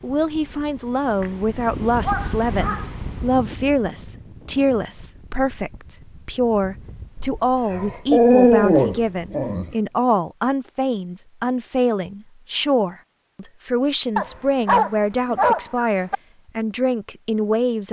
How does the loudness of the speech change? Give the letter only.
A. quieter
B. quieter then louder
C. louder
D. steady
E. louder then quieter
D.